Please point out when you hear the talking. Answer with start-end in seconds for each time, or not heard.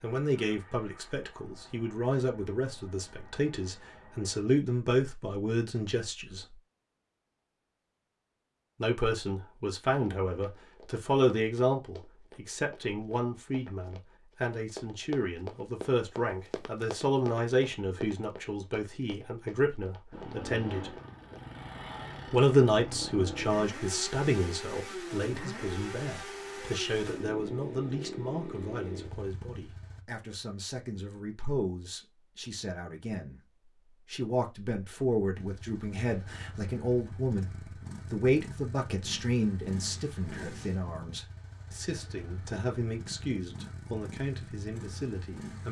0.0-6.5, 8.8-20.9, 22.3-33.4, 34.0-45.6.